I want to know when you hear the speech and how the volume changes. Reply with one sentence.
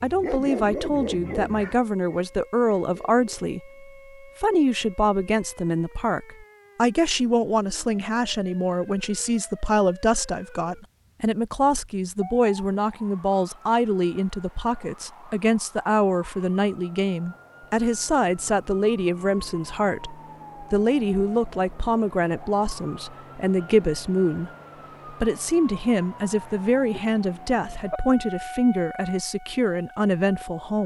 You can hear the speech from 0.0 to 24.5 s, at a steady volume; and from 25.1 to 30.8 s, at a steady volume.